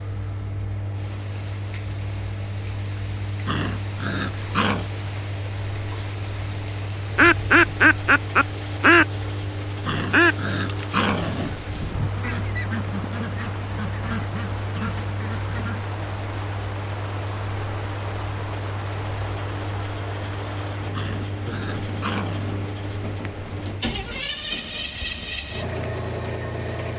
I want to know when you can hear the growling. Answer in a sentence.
The growling can be heard from 3.5 to 4.9 s, from 9.8 to 11.5 s and from 20.9 to 22.6 s.